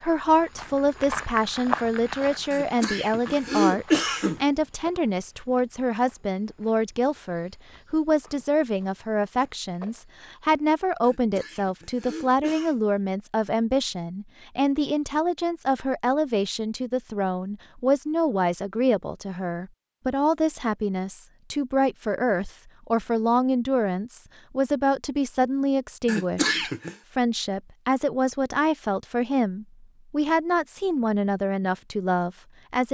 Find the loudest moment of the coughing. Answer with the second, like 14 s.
4 s.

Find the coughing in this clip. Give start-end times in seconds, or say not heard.
2.5-4.4, 11.0-12.8, 26.1-26.9.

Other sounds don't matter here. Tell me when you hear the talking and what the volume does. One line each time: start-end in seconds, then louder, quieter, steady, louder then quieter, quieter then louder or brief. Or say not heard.
0.0-32.8 steady.